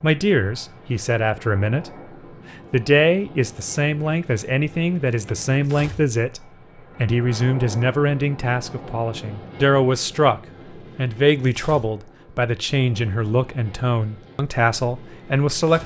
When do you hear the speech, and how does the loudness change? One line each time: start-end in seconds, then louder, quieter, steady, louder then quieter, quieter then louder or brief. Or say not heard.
0.0-1.9 brief
2.7-15.8 steady.